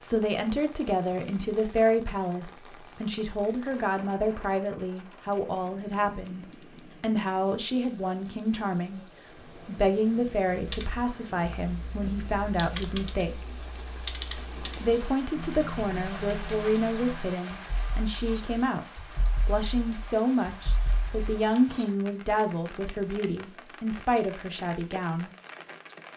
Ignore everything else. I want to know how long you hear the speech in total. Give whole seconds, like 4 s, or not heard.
24 s.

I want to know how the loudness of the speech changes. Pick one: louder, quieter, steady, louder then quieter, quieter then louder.
steady.